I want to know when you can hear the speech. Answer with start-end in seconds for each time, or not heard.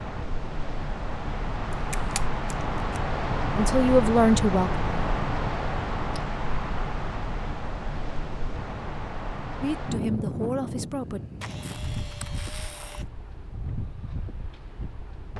3.5-5.1, 9.6-11.2.